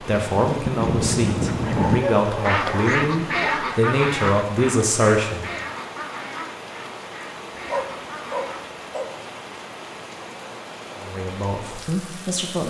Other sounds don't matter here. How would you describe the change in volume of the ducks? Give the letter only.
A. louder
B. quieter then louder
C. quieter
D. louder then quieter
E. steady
C.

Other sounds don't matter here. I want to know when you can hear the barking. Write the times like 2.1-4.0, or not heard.
1.6-3.6, 7.7-9.1.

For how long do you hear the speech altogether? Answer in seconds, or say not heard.
7 s.